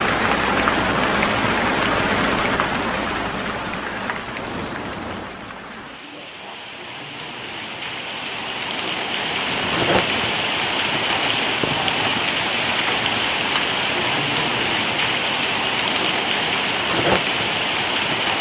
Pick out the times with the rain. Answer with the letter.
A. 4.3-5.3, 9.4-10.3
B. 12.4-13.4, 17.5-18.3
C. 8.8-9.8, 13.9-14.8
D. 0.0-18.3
D.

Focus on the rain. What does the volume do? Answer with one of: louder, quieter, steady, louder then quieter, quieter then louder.
quieter then louder.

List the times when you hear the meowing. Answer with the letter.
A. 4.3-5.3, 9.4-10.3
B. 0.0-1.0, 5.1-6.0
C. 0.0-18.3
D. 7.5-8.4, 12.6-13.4
A.